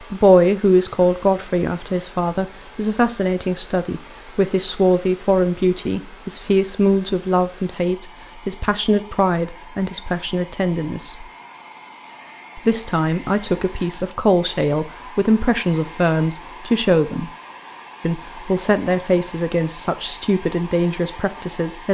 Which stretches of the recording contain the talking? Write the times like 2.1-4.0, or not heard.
0.1-11.2, 12.6-17.3, 18.0-21.8.